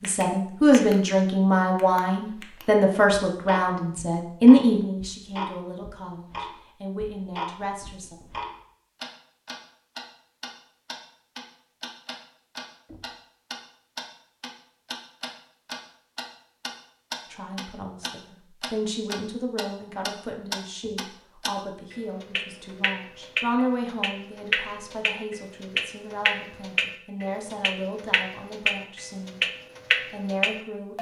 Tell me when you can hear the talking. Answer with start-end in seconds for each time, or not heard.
0.0-8.2, 17.3-29.4, 30.1-30.9.